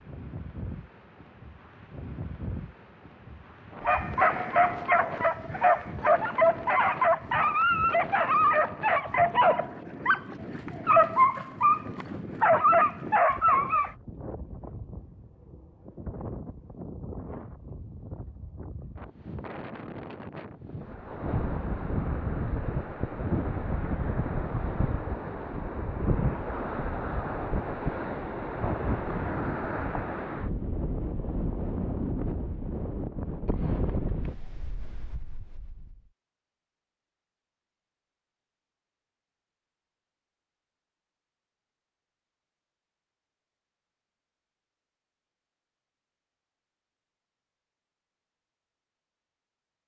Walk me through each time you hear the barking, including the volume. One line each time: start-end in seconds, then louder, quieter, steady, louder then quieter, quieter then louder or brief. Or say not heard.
3.8-13.9 steady.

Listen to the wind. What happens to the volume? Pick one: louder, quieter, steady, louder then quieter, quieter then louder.
louder.